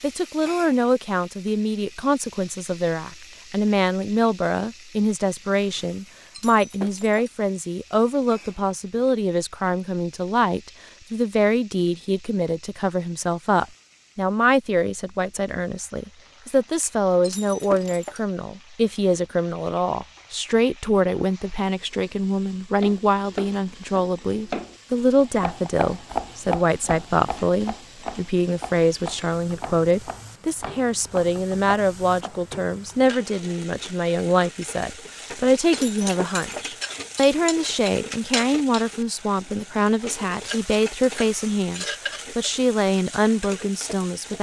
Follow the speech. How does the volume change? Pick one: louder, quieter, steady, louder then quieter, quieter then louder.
steady.